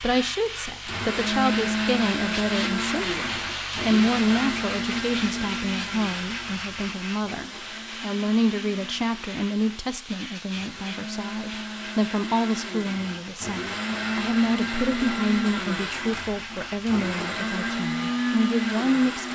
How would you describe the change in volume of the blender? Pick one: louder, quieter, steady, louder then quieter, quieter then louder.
quieter then louder.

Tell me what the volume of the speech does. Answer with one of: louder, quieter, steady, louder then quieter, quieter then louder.
steady.